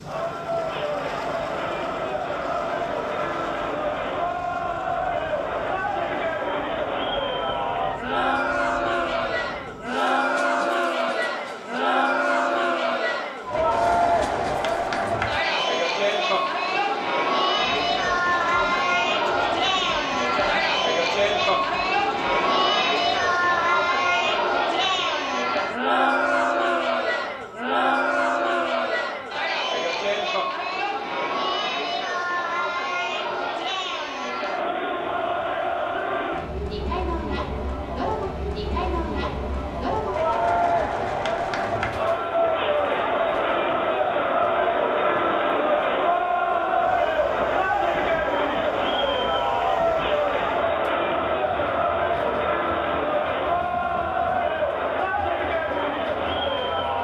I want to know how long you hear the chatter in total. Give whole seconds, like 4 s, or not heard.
57 s.